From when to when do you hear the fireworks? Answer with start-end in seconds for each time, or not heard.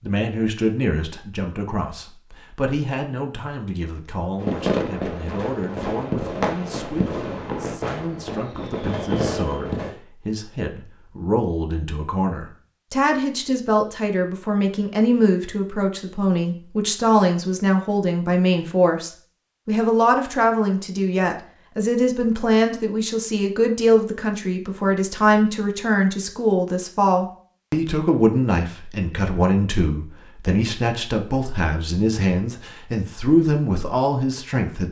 4.4-9.9.